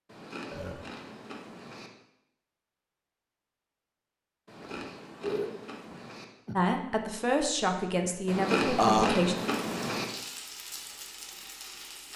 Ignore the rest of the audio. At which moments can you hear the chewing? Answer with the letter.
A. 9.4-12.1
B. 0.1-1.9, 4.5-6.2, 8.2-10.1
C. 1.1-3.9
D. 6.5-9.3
B.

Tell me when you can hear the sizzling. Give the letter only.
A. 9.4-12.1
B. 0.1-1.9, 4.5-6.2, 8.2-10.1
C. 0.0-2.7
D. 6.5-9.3
A.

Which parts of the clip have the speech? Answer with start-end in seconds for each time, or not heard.
6.5-9.3.